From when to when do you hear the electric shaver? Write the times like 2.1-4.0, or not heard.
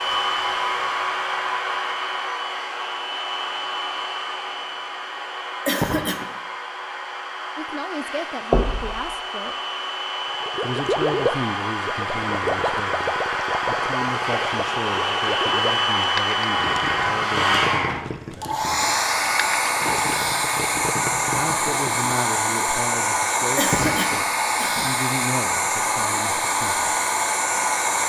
not heard.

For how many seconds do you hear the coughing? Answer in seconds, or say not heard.
2 s.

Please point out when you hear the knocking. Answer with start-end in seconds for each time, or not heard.
8.5-9.1.